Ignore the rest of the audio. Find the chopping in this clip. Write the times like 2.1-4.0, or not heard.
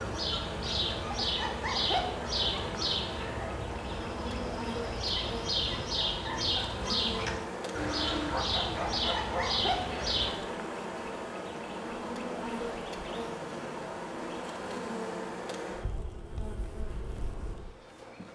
not heard.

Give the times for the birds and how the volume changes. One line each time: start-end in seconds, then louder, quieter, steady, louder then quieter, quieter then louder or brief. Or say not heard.
0.0-10.3 steady.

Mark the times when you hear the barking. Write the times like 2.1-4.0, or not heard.
7.8-10.2.